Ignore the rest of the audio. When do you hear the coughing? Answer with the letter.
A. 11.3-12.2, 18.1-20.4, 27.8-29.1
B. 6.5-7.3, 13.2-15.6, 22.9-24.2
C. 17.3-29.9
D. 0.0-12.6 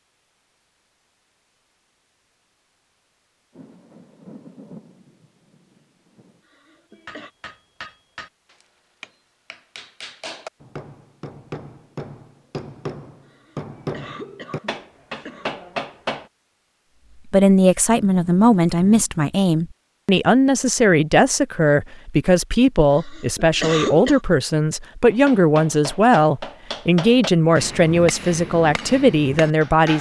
B.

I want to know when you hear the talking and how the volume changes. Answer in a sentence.
The talking can be heard from 17.3 to 29.9 s, at a steady volume.